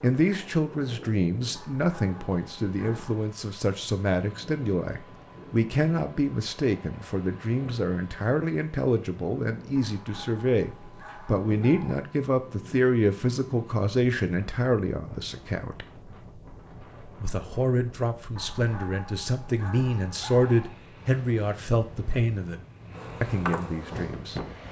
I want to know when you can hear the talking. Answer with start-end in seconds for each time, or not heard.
0.0-15.8, 17.2-22.6, 23.2-24.4.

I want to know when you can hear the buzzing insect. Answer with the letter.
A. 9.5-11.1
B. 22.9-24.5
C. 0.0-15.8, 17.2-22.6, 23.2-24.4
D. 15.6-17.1
B.